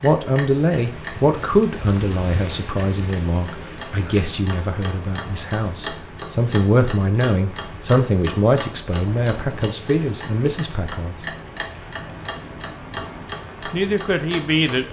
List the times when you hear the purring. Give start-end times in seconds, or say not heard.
not heard.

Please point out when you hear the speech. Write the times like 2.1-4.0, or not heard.
0.0-11.2, 13.7-14.8.